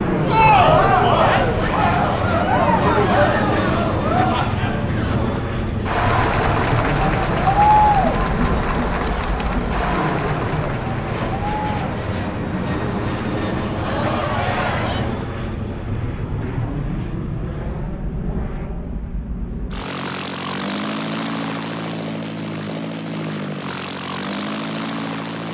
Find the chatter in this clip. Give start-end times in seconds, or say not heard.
0.1-15.2.